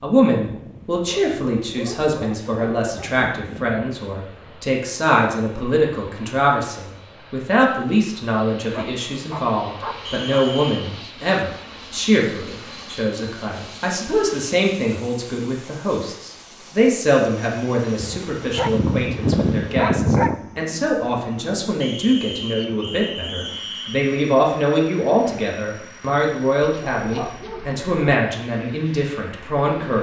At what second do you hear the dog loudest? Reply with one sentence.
The loudest moment of the dog is at 20 seconds.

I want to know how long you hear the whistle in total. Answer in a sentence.
You can hear the whistle for 3 seconds altogether.